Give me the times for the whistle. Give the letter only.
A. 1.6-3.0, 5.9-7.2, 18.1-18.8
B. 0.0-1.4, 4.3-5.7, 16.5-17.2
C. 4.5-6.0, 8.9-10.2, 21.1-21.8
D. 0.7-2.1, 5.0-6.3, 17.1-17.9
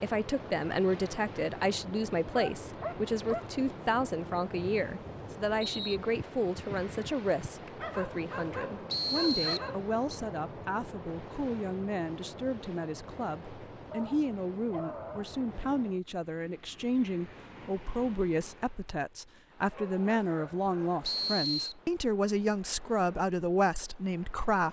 C.